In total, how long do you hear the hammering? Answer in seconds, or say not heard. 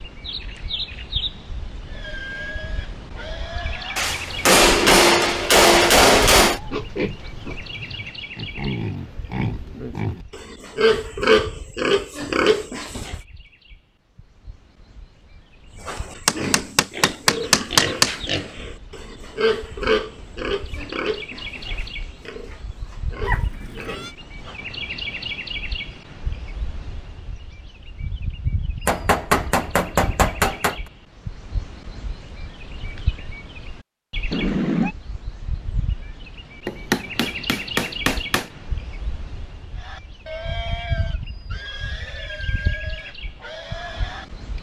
8 s.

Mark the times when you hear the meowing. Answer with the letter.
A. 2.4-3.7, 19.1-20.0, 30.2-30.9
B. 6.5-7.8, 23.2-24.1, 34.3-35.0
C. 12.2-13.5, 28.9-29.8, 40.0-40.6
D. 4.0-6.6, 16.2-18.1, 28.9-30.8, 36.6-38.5
B.